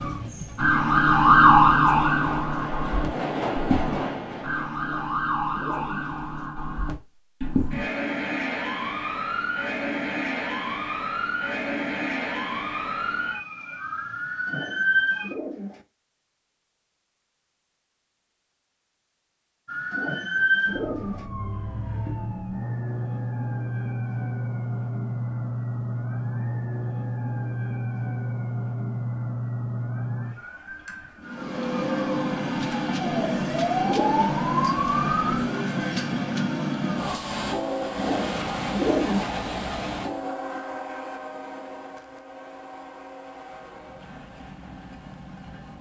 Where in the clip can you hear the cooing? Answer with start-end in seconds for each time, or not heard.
4.8-6.2, 14.4-15.8, 19.9-21.3, 33.0-34.4, 38.0-39.4.